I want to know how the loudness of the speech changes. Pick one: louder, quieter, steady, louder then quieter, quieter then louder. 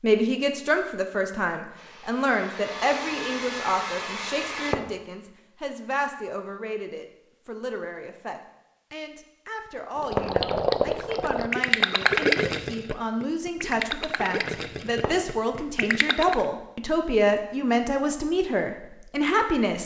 quieter then louder.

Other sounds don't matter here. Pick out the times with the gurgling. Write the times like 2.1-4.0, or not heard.
9.9-16.4.